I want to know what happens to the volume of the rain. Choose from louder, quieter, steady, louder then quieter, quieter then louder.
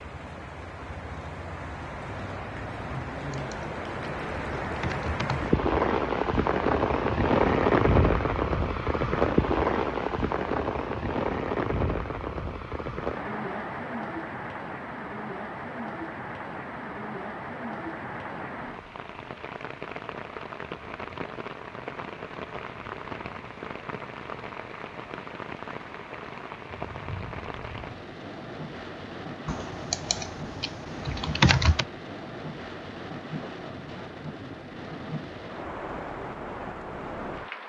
quieter.